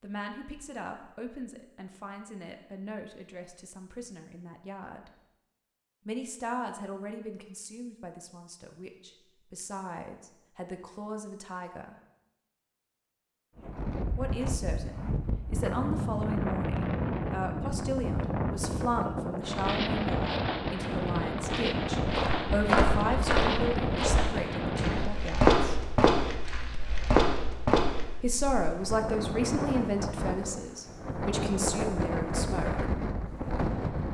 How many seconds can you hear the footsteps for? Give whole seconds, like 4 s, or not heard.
6 s.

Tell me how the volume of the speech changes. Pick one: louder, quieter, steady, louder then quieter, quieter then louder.
louder.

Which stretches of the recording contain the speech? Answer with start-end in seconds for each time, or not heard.
0.0-5.1, 6.0-11.9, 14.2-25.8, 28.2-32.9.